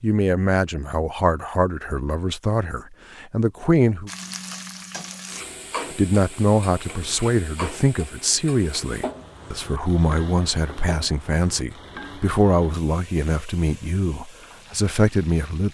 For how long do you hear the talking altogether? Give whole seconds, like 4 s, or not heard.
14 s.